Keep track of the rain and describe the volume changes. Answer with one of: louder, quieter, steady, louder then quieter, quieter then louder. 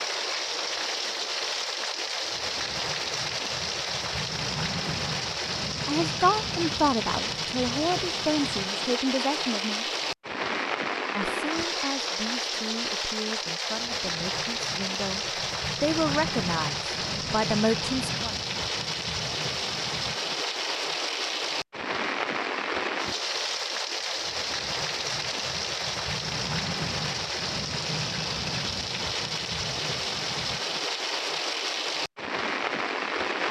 steady.